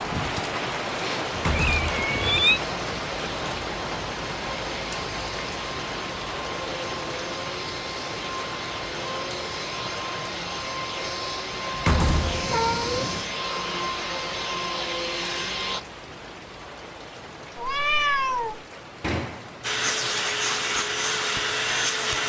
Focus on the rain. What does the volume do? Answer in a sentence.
The volume of the rain goes down.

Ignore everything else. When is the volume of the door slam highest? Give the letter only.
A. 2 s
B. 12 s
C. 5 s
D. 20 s
B.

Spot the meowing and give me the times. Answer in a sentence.
You can hear the meowing from 1.0 to 2.6 s, from 12.0 to 13.2 s and from 17.6 to 18.6 s.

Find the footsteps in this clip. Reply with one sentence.
The footsteps can't be heard in this clip.